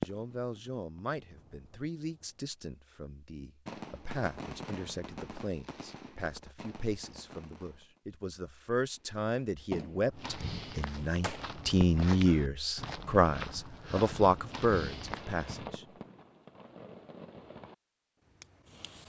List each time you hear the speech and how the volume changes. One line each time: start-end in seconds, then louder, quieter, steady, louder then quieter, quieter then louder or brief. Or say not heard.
0.0-15.8 louder.